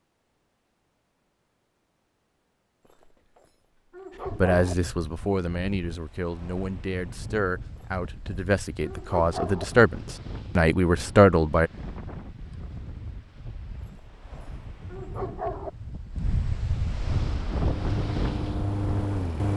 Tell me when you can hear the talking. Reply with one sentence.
The talking can be heard from 4.3 to 11.7 s.